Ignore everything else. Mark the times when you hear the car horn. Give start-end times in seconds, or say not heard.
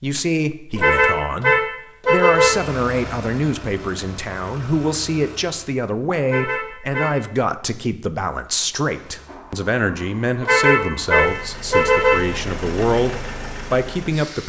0.8-2.5, 6.2-7.2, 10.4-12.2.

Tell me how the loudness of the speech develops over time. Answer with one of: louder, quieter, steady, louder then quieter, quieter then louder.
steady.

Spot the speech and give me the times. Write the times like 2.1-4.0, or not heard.
0.0-14.4.